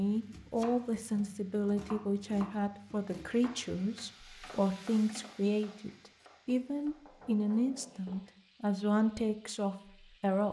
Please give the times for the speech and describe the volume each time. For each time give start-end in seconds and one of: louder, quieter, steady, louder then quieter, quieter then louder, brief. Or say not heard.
0.0-10.4 steady.